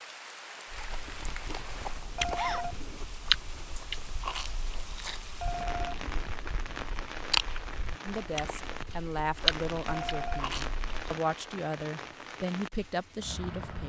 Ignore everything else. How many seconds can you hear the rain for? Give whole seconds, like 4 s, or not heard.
14 s.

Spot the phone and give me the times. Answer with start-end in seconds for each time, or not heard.
2.1-3.0, 5.4-6.2, 9.8-10.5.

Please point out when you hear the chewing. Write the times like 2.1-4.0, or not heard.
0.7-11.2.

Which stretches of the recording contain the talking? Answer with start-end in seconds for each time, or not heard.
8.1-13.8.